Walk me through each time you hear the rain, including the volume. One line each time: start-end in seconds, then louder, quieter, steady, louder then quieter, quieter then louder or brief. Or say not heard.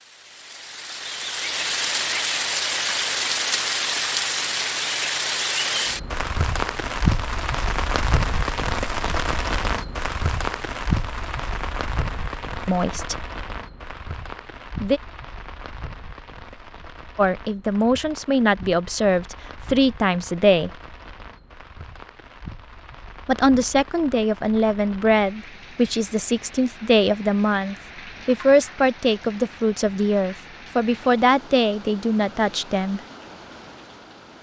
0.2-34.3 quieter.